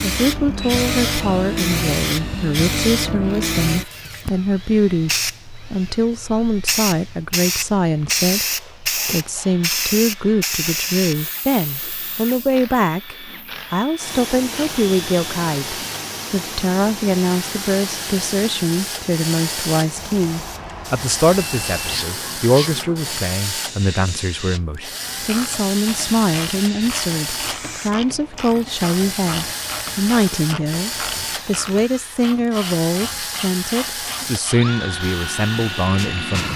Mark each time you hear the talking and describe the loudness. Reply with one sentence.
The talking can be heard from 0.0 to 36.5 s, at a steady volume.